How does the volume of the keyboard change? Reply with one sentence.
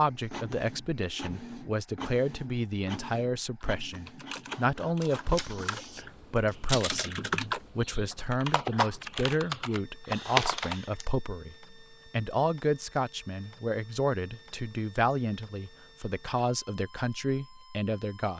The loudness of the keyboard goes up.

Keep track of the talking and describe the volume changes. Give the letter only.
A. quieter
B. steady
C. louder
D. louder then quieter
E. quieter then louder
B.